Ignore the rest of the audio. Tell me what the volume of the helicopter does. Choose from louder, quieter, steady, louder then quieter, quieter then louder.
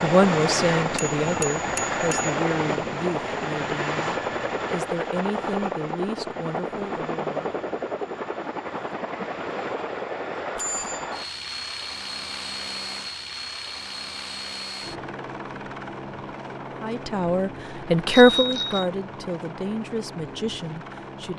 quieter.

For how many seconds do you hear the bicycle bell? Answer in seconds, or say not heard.
3 s.